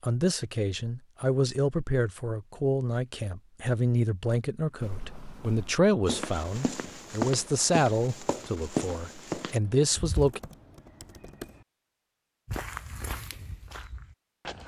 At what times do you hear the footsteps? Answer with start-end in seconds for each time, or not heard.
4.8-10.3, 12.4-14.6.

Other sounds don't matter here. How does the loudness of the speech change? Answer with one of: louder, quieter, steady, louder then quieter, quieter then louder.
steady.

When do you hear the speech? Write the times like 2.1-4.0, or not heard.
0.0-10.4.